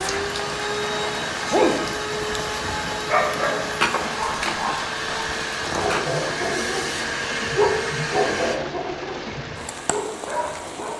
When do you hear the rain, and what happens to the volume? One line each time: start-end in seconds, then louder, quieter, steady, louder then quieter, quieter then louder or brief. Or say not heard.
0.0-10.9 steady.